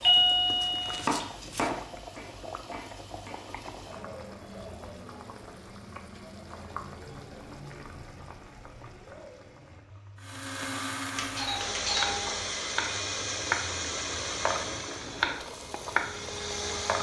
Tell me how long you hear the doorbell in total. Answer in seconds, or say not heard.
2 s.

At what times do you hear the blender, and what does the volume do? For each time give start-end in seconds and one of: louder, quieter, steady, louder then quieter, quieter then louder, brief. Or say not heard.
10.2-16.9 quieter.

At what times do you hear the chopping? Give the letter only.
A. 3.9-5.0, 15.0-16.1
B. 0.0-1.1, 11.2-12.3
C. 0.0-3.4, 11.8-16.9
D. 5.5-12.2
C.